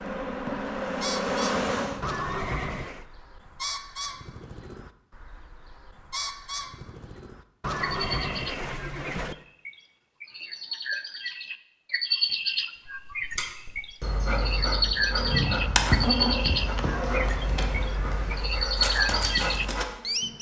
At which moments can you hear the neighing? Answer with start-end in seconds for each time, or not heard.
2.0-3.0, 7.6-9.3, 16.8-18.5.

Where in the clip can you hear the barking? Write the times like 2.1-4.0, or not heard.
12.8-19.9.